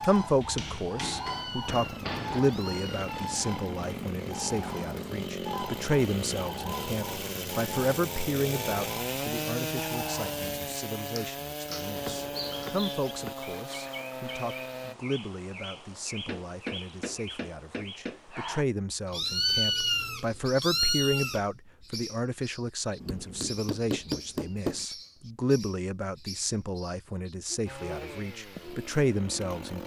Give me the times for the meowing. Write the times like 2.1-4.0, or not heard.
1.2-3.1, 19.1-21.4.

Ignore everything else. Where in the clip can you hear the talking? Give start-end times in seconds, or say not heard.
0.0-29.8.